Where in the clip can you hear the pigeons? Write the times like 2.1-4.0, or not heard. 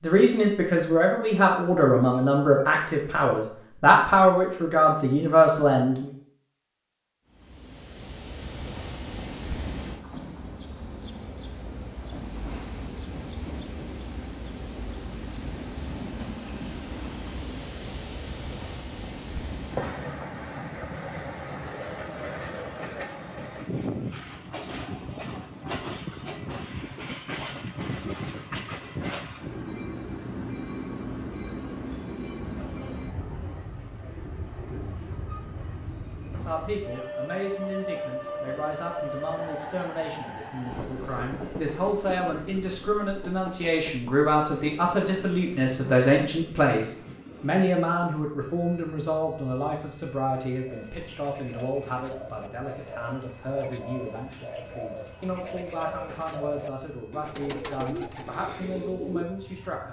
50.6-59.2.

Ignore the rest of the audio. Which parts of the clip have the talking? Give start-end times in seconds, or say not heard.
0.0-6.1, 36.3-59.8.